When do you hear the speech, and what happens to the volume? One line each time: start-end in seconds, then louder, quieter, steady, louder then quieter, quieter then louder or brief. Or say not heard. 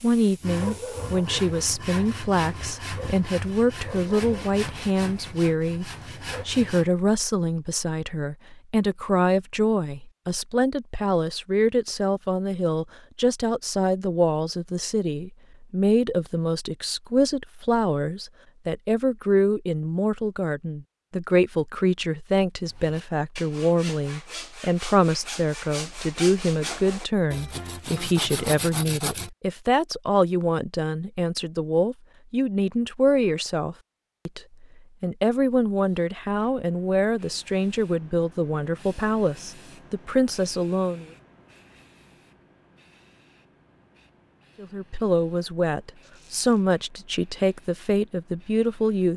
0.0-41.0 steady
44.6-49.1 steady.